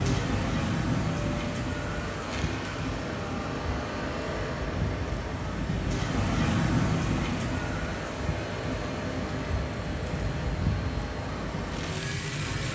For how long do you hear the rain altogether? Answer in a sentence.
You can hear the rain for 13 seconds altogether.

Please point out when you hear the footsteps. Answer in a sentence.
You can't hear the footsteps here.